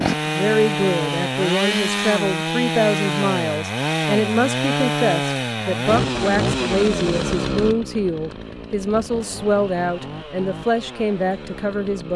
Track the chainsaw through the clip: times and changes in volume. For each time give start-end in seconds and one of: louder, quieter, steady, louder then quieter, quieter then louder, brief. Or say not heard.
0.0-12.1 quieter.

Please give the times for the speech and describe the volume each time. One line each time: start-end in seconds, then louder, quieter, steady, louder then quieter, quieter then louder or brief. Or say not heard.
0.0-12.1 steady.